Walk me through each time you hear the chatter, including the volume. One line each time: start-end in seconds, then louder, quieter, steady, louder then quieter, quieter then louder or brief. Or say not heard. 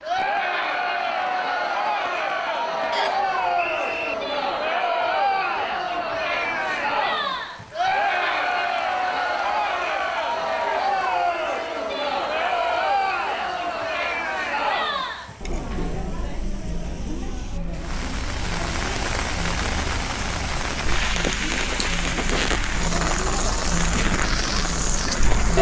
0.0-25.5 quieter.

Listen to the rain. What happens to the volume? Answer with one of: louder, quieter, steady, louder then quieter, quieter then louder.
louder.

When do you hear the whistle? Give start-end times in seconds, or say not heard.
2.9-4.2.